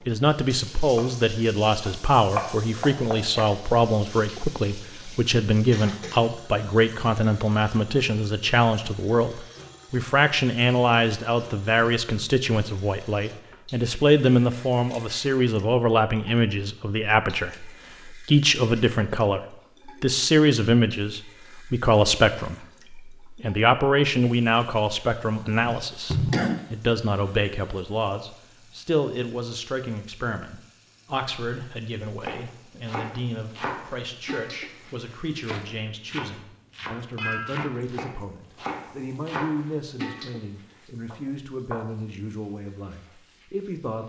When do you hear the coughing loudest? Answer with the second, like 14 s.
26 s.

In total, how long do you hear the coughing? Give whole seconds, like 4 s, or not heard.
2 s.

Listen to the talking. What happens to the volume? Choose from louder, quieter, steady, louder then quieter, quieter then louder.
quieter.